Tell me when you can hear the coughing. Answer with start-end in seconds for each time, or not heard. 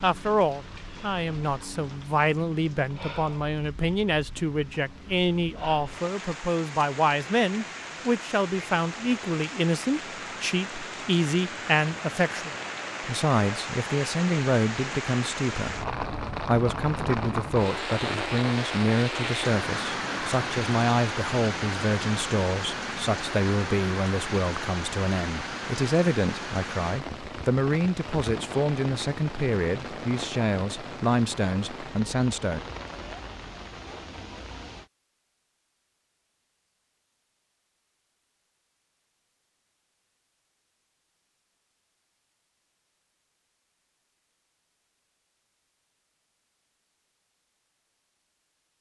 not heard.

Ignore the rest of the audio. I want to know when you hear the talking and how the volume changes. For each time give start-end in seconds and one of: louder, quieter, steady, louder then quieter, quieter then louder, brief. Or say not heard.
0.0-32.6 steady.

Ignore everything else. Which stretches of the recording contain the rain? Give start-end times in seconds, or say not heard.
0.0-34.9.